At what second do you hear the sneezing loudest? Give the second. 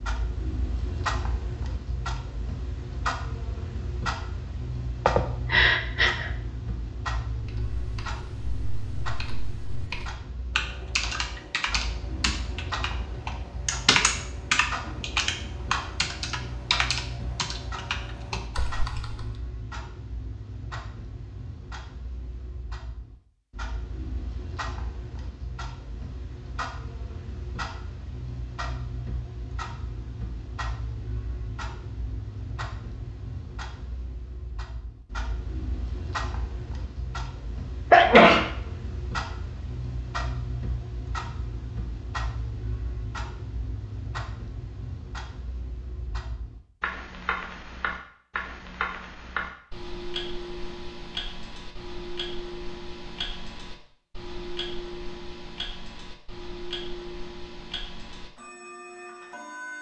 38 s.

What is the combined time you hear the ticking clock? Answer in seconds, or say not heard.
60 s.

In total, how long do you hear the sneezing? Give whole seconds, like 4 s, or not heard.
2 s.